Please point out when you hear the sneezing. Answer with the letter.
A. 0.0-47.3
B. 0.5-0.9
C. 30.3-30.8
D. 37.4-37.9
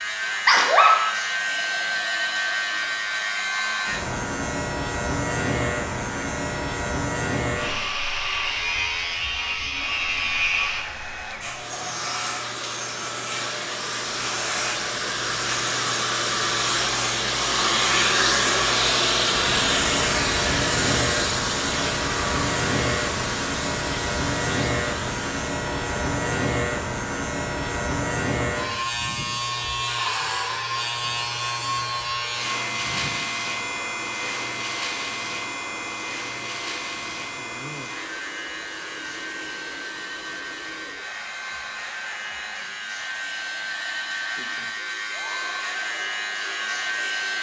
B.